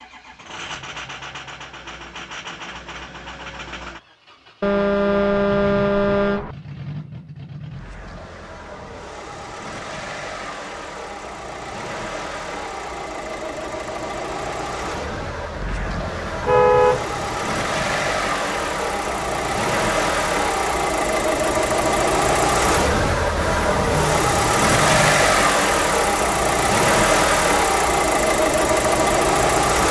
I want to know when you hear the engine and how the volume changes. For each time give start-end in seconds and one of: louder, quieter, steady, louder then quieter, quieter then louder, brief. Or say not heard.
0.0-29.8 louder.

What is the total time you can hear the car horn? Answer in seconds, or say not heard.
4 s.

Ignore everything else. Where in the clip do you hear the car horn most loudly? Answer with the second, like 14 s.
17 s.